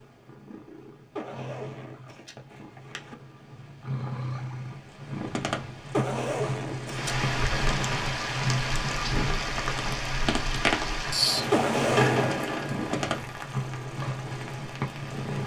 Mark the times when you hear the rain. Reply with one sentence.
The rain can be heard from 6.8 to 15.3 s.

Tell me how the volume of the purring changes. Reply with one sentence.
The loudness of the purring goes up.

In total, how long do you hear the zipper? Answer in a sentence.
You can hear the zipper for 4 seconds altogether.